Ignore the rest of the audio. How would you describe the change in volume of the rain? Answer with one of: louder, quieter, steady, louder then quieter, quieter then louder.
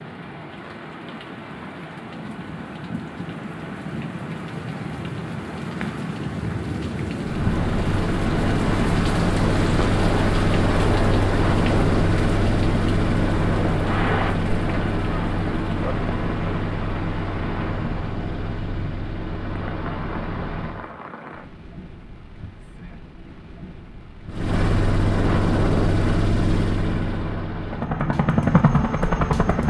louder then quieter.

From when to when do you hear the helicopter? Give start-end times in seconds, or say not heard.
7.2-20.9, 24.3-29.6.